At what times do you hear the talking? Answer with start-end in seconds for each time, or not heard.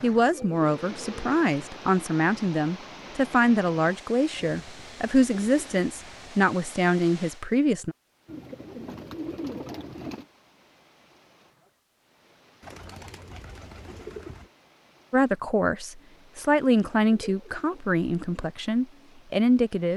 0.0-8.0, 15.1-19.9.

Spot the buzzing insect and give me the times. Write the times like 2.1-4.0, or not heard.
not heard.